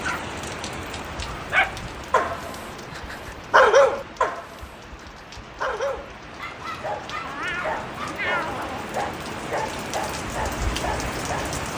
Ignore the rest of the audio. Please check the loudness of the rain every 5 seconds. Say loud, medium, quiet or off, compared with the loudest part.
medium, medium, loud.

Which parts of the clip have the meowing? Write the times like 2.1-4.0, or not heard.
7.2-8.9.